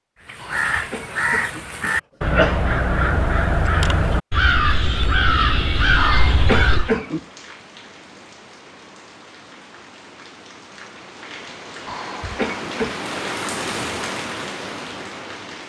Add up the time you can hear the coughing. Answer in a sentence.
You can hear the coughing for 5 seconds altogether.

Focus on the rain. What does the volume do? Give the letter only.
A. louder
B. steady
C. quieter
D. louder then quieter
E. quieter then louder
A.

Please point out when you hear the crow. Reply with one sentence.
The crow can be heard from 0.2 to 7.0 s.